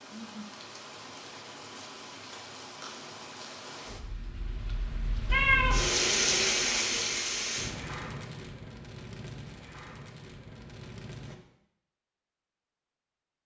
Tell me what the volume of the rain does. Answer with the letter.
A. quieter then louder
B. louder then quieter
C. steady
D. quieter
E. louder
B.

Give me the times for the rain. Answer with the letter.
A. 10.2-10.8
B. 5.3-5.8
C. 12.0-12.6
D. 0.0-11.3
D.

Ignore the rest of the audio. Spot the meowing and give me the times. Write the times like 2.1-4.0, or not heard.
5.3-5.8.